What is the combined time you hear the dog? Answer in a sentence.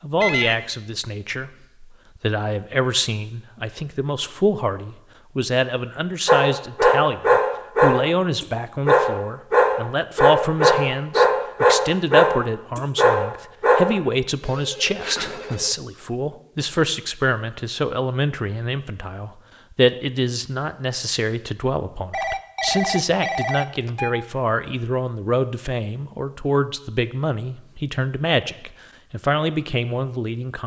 The dog can be heard for 8 seconds in total.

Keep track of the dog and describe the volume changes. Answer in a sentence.
The volume of the dog stays about the same.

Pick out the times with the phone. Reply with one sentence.
You can hear the phone from 0.2 to 0.7 s, from 14.4 to 15.8 s and from 22.1 to 24.1 s.